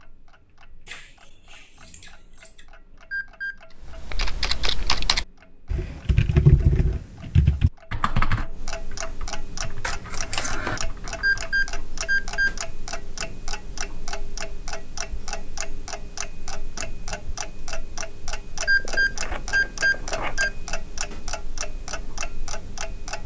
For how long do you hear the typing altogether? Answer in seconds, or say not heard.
8 s.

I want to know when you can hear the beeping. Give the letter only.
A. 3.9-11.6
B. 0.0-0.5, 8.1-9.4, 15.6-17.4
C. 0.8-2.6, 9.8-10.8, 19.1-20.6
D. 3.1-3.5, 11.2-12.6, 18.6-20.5
D.